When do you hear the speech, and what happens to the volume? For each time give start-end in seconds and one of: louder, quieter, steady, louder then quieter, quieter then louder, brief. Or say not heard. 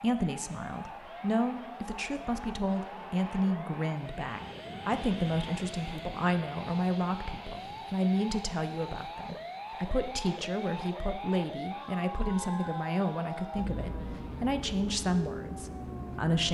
0.0-16.4 steady.